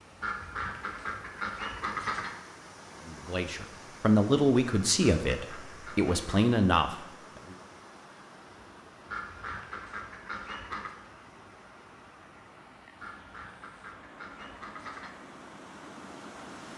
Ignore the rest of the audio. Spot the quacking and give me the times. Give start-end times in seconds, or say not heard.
0.2-2.4, 4.7-6.5, 9.1-10.9, 12.9-15.1.